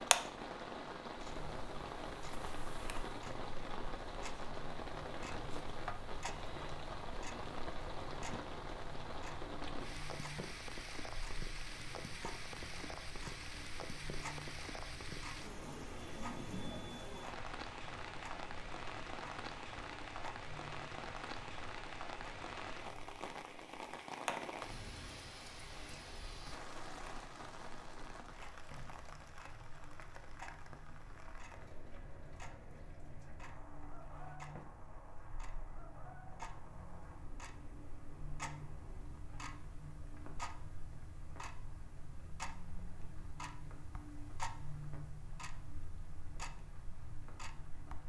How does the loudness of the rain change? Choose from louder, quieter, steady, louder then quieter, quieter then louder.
quieter.